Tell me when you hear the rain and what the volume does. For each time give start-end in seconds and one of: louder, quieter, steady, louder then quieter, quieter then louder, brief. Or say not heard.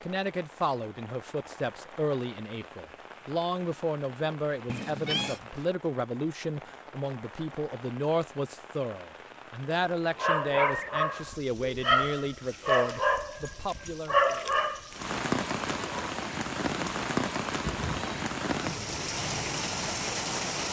0.0-20.6 louder.